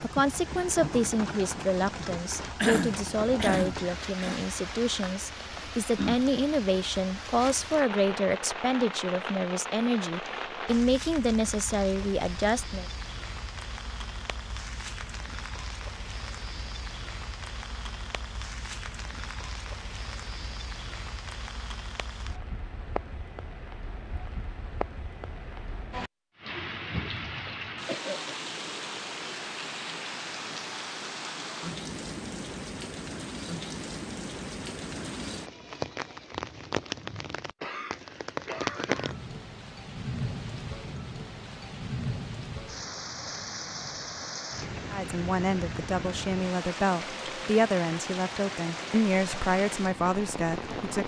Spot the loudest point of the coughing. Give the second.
3 s.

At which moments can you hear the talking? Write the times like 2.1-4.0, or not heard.
0.0-12.8, 44.9-51.0.